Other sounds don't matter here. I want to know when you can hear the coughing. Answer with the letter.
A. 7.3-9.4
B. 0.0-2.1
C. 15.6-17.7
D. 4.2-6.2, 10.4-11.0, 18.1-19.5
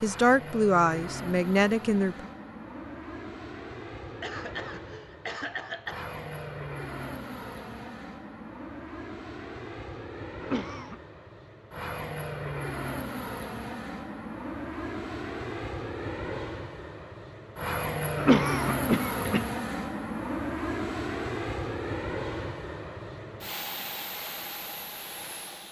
D.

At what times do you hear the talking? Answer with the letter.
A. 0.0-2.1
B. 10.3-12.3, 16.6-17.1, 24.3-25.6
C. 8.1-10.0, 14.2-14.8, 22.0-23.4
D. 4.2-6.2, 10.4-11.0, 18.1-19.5
A.